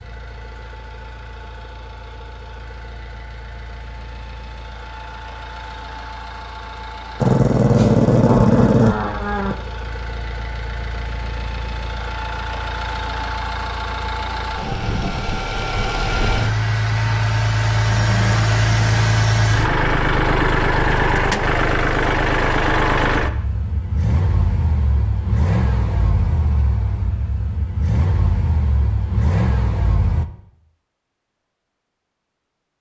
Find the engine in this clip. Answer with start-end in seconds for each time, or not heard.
0.0-30.2.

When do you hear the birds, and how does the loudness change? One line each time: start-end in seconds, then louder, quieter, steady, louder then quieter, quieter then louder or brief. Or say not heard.
not heard.